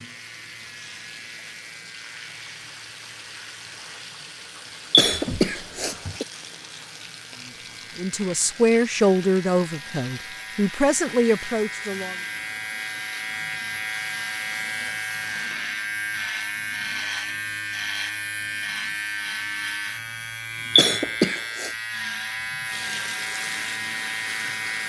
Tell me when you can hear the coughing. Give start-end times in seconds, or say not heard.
4.9-6.2, 20.8-21.7.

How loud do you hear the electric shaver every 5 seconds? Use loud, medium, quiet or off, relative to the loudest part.
quiet, quiet, loud, loud, loud.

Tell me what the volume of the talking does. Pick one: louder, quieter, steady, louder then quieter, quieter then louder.
quieter then louder.